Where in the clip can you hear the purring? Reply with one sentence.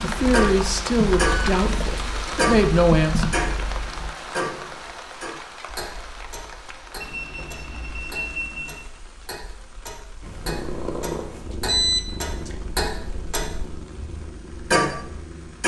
The purring can be heard from 0.0 to 4.1 s and from 10.2 to 15.6 s.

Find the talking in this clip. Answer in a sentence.
You can hear the talking from 0.0 to 3.3 s.